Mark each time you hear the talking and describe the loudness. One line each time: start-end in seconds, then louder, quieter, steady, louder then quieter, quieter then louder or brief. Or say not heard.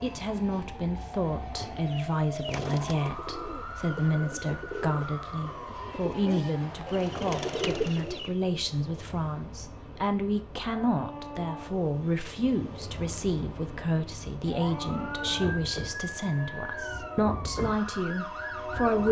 0.0-19.0 steady.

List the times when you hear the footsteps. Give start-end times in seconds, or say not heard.
not heard.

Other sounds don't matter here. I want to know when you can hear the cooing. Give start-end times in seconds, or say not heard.
1.6-8.3.